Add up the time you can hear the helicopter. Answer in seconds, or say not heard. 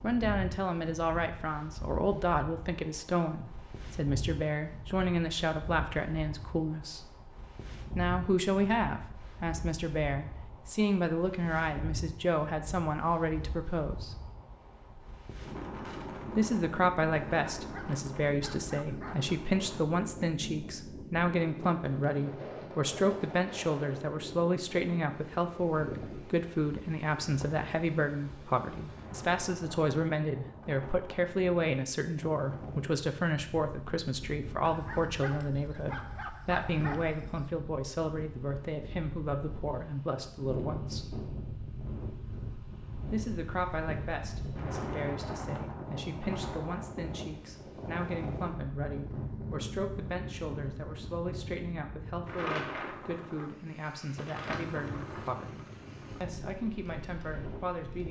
not heard.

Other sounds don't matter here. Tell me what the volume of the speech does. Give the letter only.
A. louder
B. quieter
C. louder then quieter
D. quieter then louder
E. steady
B.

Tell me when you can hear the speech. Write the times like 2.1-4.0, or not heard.
0.0-7.1, 8.0-14.2, 16.4-41.1, 43.1-58.0.